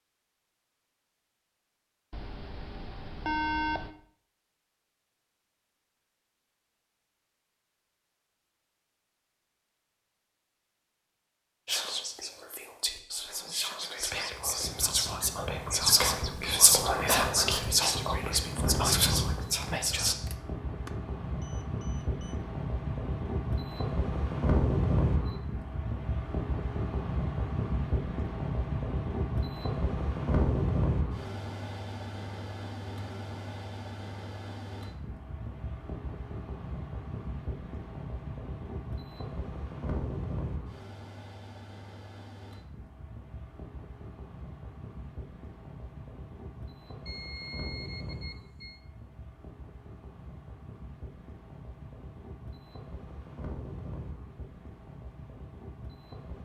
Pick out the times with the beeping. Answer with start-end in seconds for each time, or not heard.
2.1-3.9, 20.2-22.4, 47.0-48.8.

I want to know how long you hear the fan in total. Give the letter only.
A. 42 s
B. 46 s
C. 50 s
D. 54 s
A.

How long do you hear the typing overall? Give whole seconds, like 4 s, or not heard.
not heard.